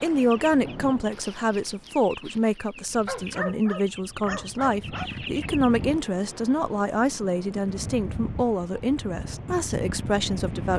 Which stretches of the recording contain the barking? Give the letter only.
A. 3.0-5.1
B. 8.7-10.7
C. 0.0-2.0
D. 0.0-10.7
A.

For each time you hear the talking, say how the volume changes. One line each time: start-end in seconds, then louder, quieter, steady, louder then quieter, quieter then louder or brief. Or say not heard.
0.0-10.7 steady.